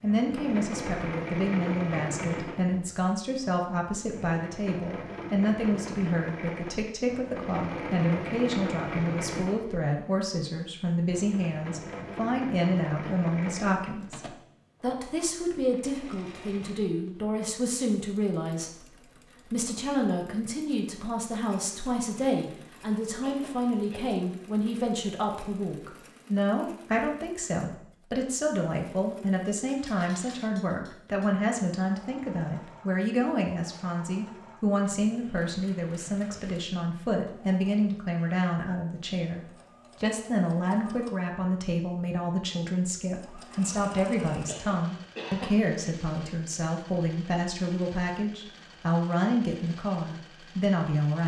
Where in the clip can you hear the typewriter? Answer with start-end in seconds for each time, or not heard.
not heard.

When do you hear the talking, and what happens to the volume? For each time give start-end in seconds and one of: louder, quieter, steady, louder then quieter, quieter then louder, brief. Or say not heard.
0.0-51.2 steady.